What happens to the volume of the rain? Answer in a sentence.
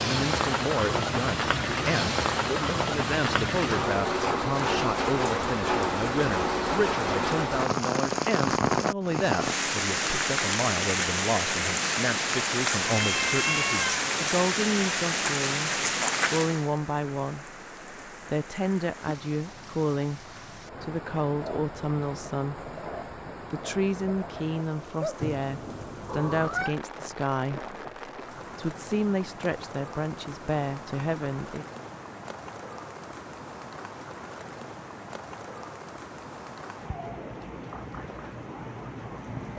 The volume of the rain goes down.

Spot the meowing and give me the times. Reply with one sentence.
You can hear the meowing from 12.8 to 14.1 s and from 25.2 to 26.8 s.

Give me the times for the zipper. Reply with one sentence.
You can't hear the zipper here.